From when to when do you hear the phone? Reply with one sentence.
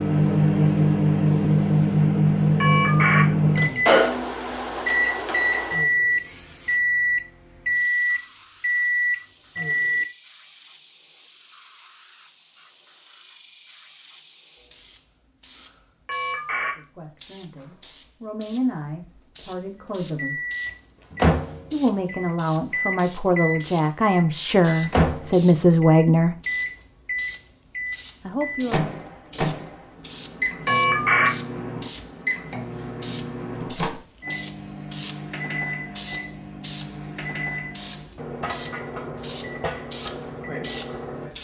You can hear the phone from 2.6 to 3.2 s, from 16.1 to 16.7 s and from 30.6 to 31.3 s.